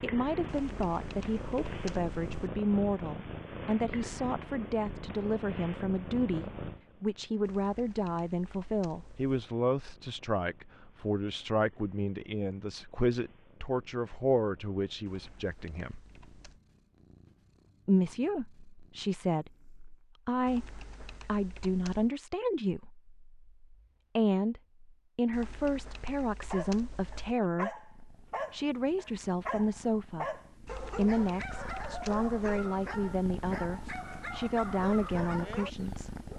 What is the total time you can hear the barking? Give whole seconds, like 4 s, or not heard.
10 s.